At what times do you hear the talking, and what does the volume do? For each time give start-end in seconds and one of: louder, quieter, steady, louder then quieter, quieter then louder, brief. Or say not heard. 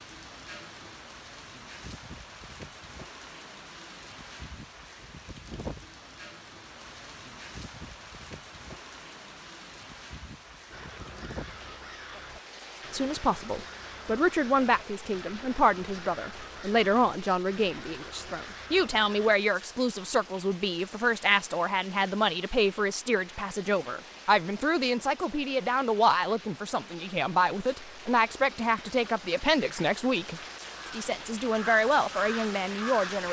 12.9-33.2 steady.